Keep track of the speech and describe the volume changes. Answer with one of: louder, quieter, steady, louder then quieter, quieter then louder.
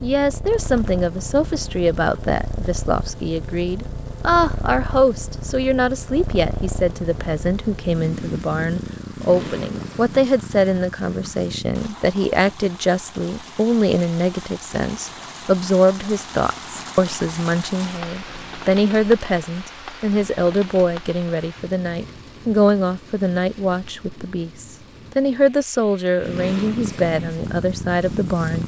steady.